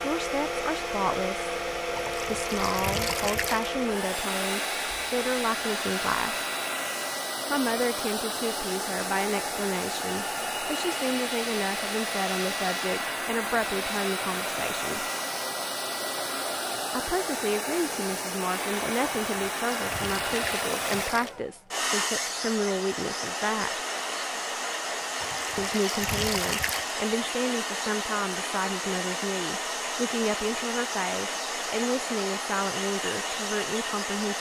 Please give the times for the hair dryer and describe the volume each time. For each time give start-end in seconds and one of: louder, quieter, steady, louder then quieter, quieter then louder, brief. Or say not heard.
0.0-34.3 steady.